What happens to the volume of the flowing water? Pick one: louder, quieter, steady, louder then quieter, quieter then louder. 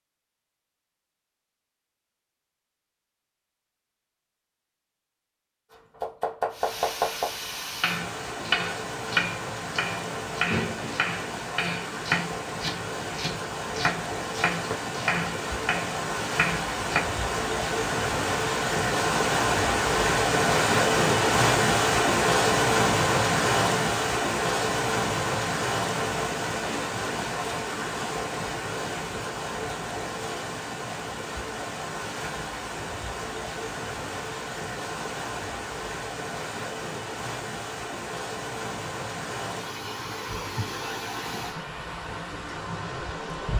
louder then quieter.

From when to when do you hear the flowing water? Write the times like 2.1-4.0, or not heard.
6.5-43.5.